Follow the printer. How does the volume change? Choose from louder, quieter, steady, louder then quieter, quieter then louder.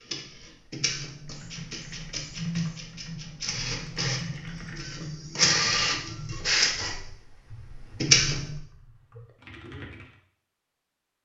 louder.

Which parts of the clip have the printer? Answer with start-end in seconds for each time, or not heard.
0.0-8.6.